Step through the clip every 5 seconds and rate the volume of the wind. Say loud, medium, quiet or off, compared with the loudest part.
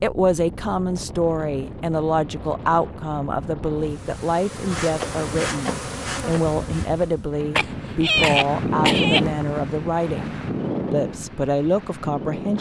medium, loud, loud.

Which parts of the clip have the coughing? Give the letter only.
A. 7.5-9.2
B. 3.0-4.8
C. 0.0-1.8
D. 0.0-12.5
A.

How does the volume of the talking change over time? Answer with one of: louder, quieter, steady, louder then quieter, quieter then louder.
steady.